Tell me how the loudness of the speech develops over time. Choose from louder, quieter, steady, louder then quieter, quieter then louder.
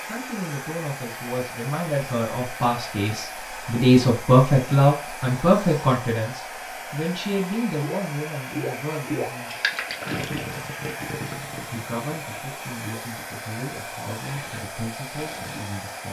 louder then quieter.